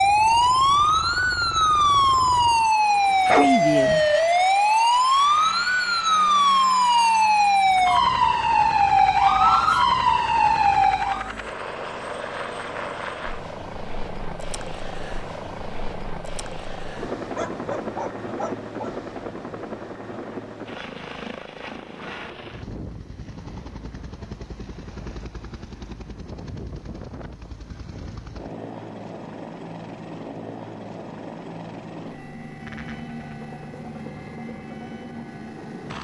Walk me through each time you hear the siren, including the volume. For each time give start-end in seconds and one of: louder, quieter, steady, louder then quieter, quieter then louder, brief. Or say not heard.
0.0-11.3 steady.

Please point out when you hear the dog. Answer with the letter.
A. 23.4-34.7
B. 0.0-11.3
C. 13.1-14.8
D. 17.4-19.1
D.